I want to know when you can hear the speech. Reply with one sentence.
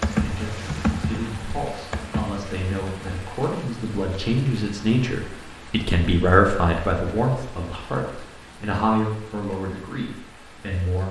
The speech can be heard from 0.1 to 11.0 s.